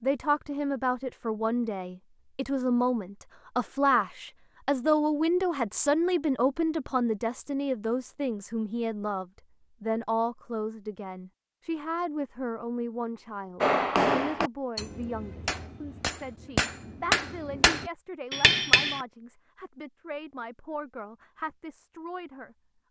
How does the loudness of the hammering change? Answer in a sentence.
The volume of the hammering goes down, then up.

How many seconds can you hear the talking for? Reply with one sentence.
The talking can be heard for 23 seconds in total.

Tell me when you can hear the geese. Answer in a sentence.
You can't hear the geese here.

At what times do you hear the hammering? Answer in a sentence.
You can hear the hammering from 13.6 to 19.0 s.